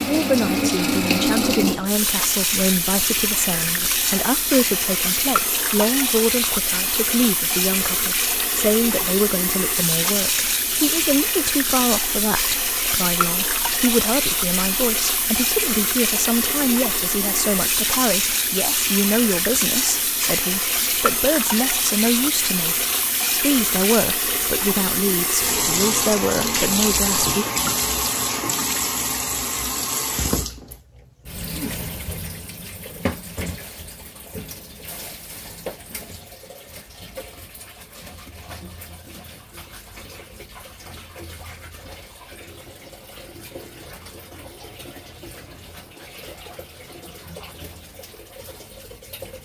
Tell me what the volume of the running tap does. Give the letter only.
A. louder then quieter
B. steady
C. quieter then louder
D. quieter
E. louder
D.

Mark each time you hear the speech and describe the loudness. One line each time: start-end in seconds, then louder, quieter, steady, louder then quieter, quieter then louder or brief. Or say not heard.
0.1-27.4 steady.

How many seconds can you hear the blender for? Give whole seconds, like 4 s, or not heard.
not heard.